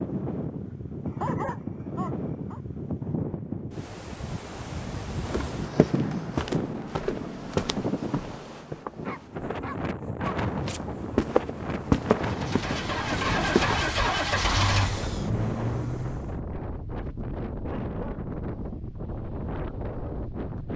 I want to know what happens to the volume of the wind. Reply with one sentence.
The loudness of the wind stays about the same.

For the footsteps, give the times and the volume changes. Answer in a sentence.
The footsteps can be heard from 5.2 to 13.8 s, getting quieter then louder.